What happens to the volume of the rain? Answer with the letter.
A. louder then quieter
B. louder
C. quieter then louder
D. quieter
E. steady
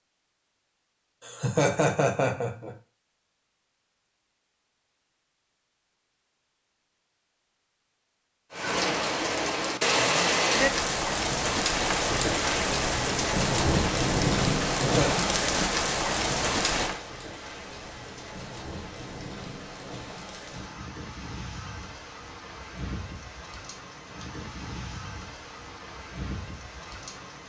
D.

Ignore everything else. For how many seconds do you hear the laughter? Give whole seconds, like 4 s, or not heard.
2 s.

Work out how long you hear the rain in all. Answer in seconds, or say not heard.
19 s.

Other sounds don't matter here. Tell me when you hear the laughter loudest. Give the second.
2 s.